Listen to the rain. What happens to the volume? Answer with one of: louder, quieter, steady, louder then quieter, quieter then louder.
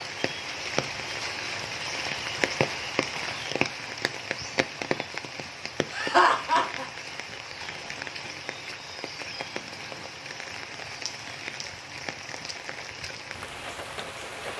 quieter.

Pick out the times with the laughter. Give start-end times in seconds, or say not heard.
5.9-6.8.